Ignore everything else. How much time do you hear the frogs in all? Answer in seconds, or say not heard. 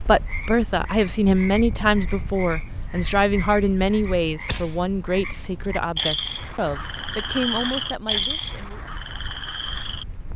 10 s.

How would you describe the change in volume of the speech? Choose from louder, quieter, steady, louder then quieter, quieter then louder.
quieter.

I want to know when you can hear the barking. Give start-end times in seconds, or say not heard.
not heard.